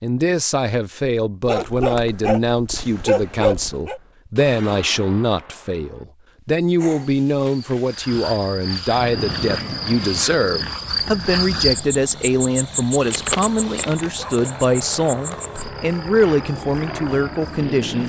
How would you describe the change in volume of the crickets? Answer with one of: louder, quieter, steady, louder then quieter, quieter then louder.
louder then quieter.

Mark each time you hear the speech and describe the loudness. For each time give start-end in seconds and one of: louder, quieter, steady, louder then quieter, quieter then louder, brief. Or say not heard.
0.0-18.0 steady.